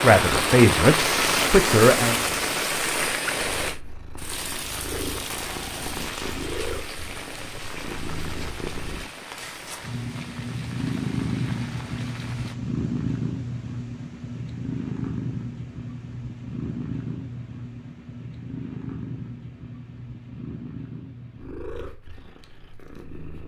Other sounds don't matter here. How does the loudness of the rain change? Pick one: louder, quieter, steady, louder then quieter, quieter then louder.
quieter.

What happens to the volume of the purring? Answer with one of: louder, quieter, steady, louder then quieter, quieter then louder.
louder then quieter.